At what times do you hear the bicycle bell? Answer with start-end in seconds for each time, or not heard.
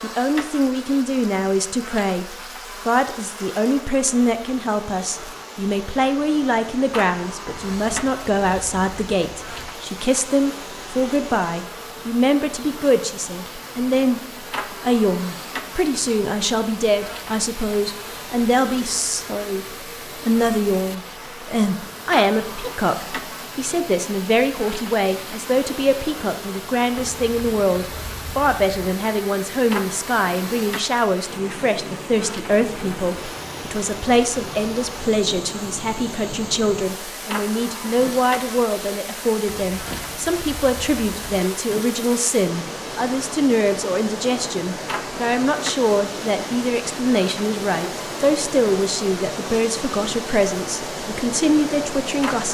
not heard.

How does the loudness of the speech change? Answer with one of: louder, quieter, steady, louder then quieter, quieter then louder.
steady.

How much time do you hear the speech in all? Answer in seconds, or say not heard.
52 s.